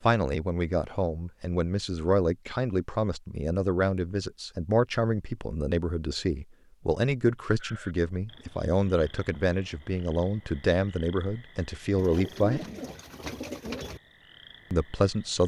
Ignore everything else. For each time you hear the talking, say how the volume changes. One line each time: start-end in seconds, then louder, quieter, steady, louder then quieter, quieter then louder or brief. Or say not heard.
0.0-12.6 steady
14.7-15.4 brief.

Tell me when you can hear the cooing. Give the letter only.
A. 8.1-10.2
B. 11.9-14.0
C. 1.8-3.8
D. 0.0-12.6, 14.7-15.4
B.